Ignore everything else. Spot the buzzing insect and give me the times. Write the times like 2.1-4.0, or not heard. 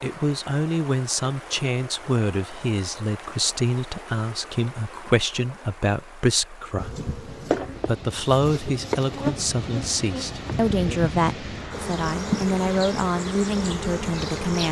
6.8-14.6.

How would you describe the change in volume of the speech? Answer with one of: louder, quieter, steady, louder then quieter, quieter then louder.
steady.